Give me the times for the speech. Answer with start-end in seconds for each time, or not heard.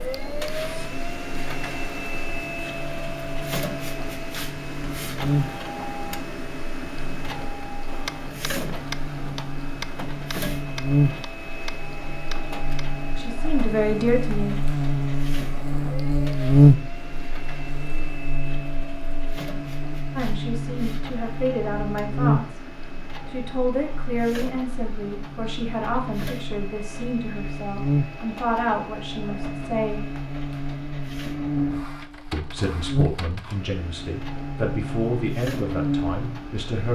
13.2-14.7, 20.1-22.6, 23.3-30.1, 32.3-36.9.